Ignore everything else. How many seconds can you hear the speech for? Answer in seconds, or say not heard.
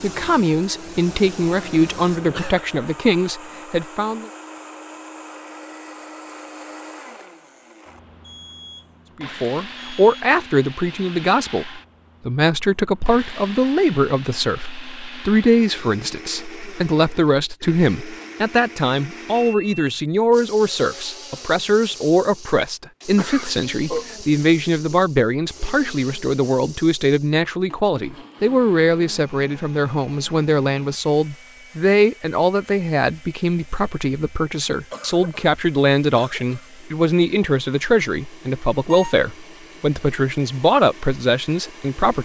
37 s.